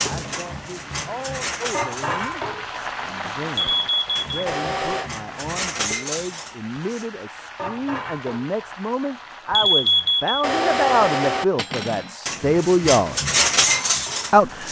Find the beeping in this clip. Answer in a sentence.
The beeping can be heard from 3.5 to 5.1 s and from 9.5 to 11.4 s.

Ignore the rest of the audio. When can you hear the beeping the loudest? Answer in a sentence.
The loudest moment of the beeping is at 10 seconds.